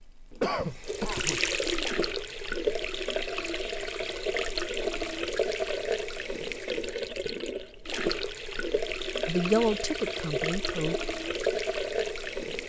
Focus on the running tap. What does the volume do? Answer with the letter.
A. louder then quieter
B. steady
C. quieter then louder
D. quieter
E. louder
B.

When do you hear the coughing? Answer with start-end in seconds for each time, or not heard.
0.4-1.4.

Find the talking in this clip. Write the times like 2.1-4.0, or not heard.
9.2-10.9.